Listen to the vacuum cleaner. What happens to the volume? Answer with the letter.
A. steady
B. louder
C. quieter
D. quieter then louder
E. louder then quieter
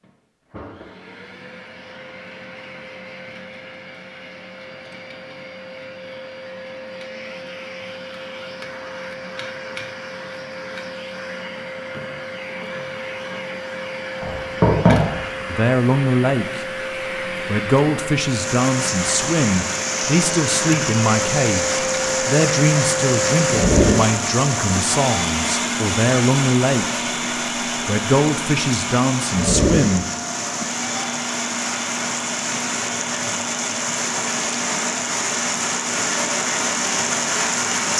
E.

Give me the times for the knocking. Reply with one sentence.
You can hear the knocking from 14.2 to 15.2 s.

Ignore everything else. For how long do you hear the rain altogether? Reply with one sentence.
The rain can be heard for 20 seconds in total.